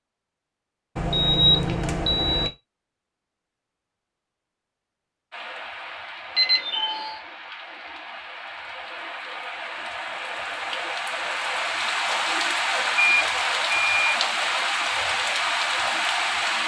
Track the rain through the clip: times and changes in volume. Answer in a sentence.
You can hear the rain from 5.3 to 16.6 s, getting louder.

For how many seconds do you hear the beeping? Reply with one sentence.
The beeping can be heard for 4 seconds in total.